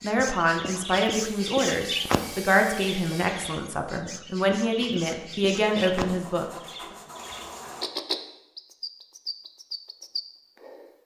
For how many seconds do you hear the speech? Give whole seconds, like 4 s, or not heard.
7 s.